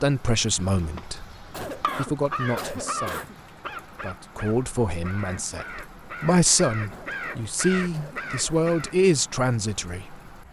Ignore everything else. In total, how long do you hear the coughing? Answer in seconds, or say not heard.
4 s.